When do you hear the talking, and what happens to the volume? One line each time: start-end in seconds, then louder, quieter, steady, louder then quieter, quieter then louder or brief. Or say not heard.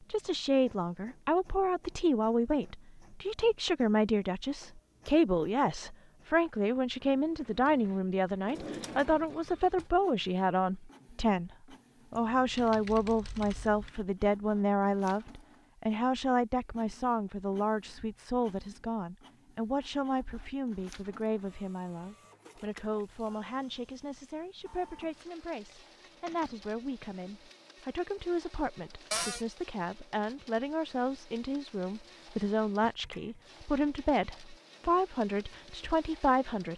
0.1-11.5 steady
12.1-36.7 quieter then louder.